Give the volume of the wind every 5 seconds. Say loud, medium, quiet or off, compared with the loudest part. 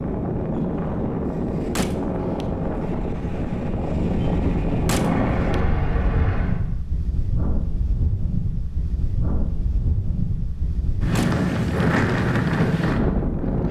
loud, medium, loud.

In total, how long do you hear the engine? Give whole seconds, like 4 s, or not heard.
2 s.